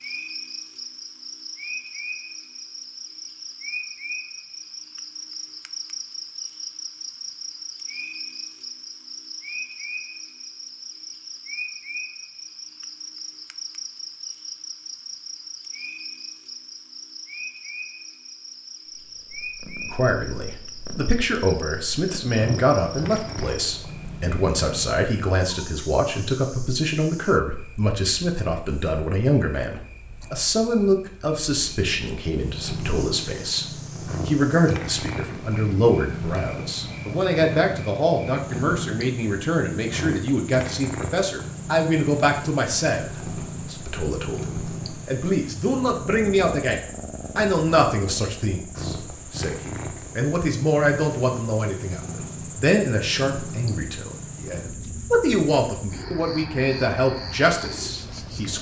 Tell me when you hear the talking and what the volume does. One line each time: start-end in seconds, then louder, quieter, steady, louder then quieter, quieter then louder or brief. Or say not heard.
19.9-58.5 steady.